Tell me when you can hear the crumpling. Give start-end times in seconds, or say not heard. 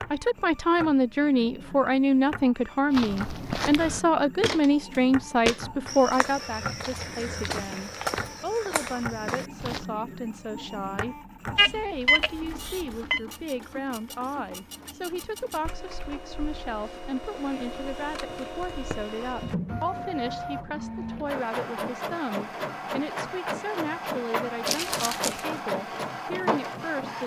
24.6-25.6.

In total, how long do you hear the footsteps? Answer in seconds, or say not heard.
7 s.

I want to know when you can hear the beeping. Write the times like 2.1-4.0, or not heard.
11.6-13.2.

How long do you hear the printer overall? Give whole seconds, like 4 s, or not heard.
27 s.